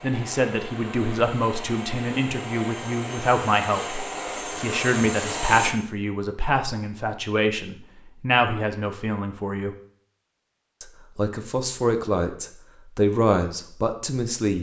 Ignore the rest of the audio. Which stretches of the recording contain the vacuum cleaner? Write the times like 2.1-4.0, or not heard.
0.0-5.8.